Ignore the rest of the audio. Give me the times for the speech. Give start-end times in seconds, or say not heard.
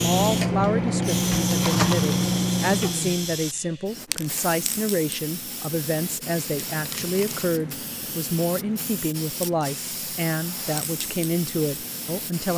0.0-12.5.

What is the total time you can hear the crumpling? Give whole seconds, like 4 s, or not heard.
2 s.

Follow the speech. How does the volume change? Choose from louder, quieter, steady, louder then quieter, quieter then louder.
steady.